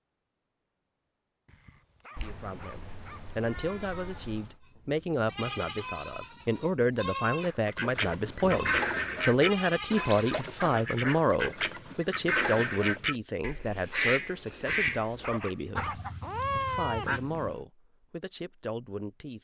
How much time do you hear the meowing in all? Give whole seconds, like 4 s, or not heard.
4 s.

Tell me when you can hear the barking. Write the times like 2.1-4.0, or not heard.
1.4-3.2, 14.7-16.0.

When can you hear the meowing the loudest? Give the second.
17 s.